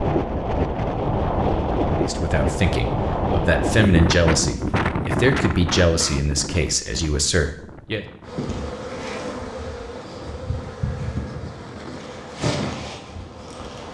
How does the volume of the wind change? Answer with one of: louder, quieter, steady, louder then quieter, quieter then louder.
quieter.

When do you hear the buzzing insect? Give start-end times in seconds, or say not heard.
8.2-13.9.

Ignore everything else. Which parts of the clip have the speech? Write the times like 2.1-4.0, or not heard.
2.0-8.1.